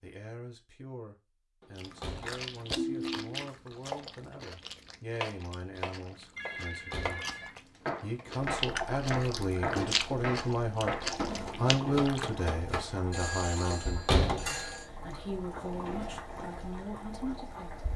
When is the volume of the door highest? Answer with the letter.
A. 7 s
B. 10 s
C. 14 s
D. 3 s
C.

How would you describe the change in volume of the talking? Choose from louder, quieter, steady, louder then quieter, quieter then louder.
louder then quieter.